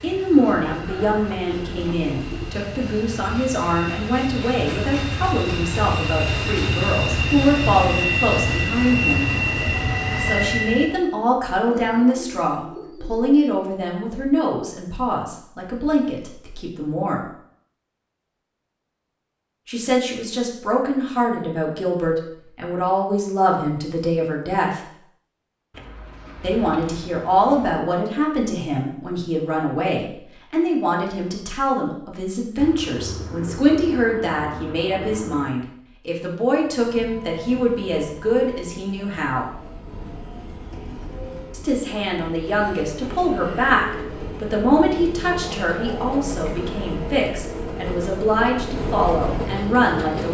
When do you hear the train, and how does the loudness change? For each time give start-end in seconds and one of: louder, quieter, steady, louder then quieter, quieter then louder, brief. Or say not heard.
0.0-11.0 louder
36.5-50.2 louder.